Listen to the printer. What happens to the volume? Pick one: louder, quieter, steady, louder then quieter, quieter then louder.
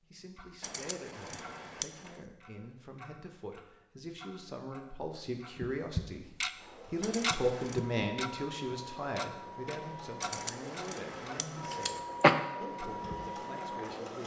louder.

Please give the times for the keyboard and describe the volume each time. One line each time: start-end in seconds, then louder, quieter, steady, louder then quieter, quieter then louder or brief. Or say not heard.
not heard.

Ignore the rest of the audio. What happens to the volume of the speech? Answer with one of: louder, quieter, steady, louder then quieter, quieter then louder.
louder then quieter.